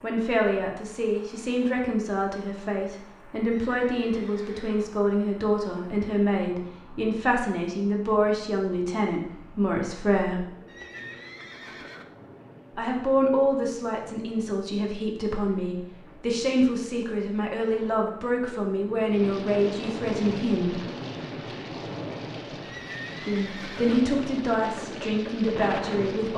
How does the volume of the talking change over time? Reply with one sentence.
The volume of the talking stays about the same.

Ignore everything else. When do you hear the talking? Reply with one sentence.
The talking can be heard from 0.0 to 10.4 s, from 12.8 to 20.8 s and from 23.2 to 26.3 s.